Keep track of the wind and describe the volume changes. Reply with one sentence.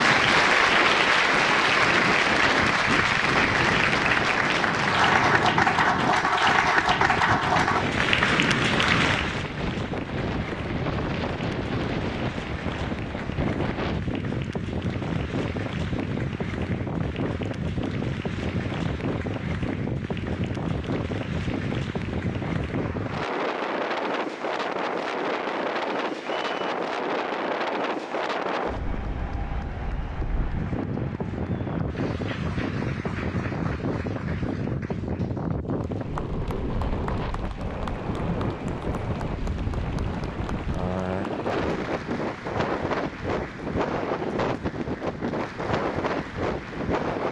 The volume of the wind stays about the same.